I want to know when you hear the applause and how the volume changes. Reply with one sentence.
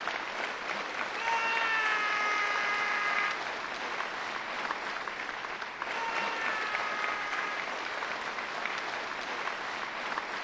You can hear the applause from 0.0 to 10.3 s, at a steady volume.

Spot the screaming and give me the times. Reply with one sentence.
You can hear the screaming from 1.1 to 3.4 s and from 6.0 to 7.6 s.